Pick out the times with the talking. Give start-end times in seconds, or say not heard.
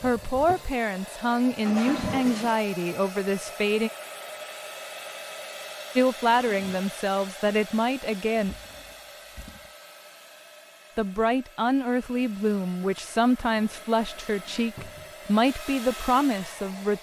0.0-3.9, 6.0-8.6, 10.9-16.9.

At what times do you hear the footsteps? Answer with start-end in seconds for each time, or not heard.
not heard.